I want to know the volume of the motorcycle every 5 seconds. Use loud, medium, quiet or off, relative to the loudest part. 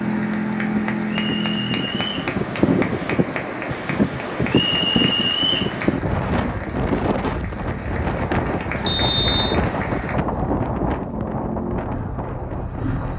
loud, off, medium.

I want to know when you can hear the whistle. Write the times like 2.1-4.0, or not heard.
1.1-2.1, 4.5-5.8, 8.8-9.6.